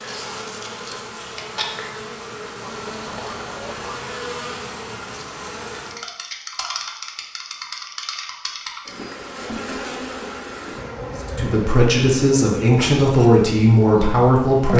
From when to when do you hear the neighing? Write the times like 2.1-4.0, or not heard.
not heard.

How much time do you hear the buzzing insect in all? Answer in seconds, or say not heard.
15 s.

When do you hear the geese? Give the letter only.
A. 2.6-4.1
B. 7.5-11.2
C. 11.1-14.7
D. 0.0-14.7
A.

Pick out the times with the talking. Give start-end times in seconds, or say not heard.
11.1-14.7.